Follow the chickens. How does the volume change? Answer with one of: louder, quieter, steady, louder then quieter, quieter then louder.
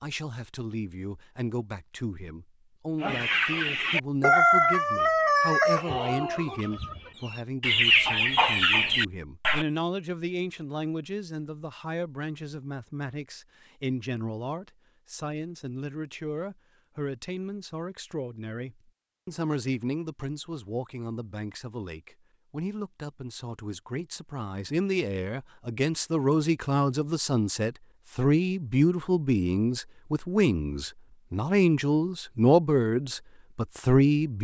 quieter then louder.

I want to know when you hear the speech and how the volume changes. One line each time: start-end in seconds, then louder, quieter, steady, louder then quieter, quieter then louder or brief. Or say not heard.
0.0-34.3 louder.